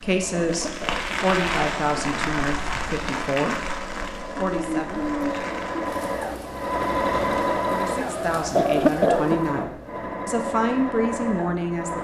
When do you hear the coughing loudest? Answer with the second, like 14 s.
9 s.